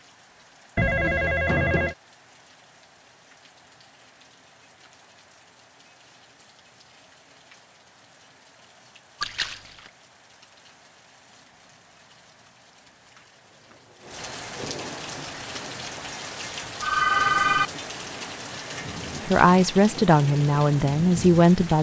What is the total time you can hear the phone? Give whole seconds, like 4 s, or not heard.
3 s.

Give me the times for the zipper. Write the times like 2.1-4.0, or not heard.
not heard.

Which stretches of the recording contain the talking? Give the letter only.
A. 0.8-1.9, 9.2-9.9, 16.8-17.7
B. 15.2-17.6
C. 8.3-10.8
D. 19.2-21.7
D.